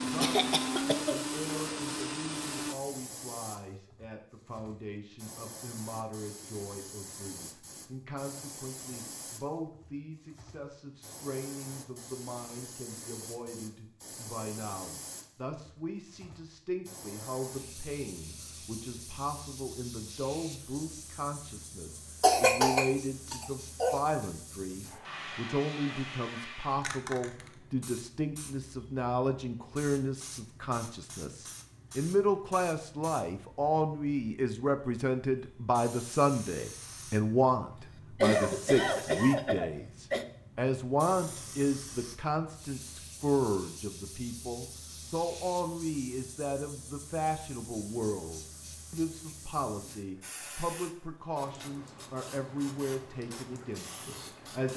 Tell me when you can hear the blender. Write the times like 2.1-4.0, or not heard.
0.0-2.8.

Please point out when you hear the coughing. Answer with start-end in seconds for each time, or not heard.
0.2-1.2, 22.2-24.0, 38.1-40.2.